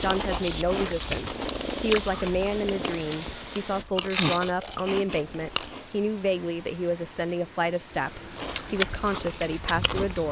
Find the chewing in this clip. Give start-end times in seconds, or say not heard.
0.0-5.8, 8.2-10.2.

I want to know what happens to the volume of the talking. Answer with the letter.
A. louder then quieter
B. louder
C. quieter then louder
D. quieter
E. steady
E.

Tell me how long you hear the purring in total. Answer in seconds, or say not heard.
4 s.